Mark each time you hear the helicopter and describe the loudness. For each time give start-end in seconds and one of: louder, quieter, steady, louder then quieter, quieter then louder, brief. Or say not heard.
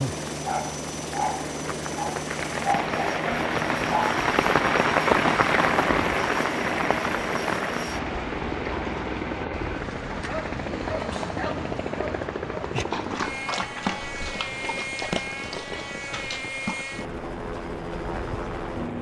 0.0-18.9 steady.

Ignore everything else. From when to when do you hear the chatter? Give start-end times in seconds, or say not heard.
not heard.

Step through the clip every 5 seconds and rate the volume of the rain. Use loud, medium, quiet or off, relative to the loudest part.
loud, loud, quiet, quiet.